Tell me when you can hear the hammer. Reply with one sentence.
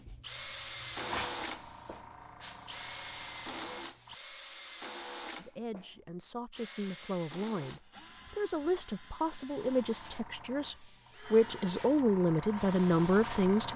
You can't hear the hammer here.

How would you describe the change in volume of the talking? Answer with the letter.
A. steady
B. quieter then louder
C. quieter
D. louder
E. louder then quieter
D.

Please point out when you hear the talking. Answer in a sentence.
You can hear the talking from 5.3 to 13.7 s.